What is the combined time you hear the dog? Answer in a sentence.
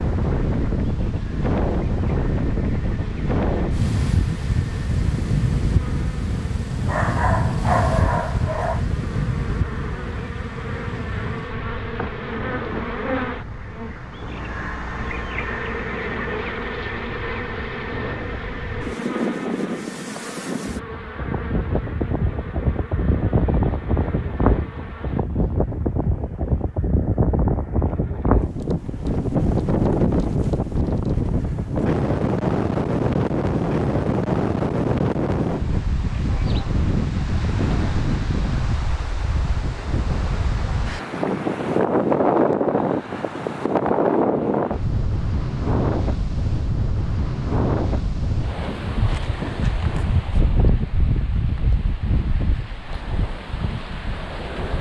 The dog can be heard for 2 seconds in total.